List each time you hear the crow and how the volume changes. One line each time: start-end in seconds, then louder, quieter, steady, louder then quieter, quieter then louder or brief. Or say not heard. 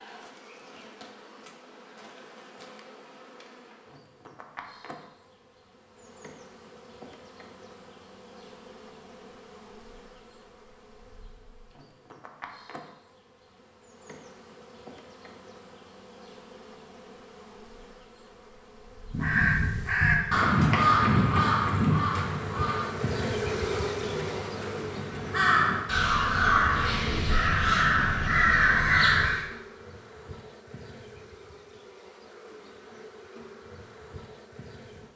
19.1-29.4 quieter then louder.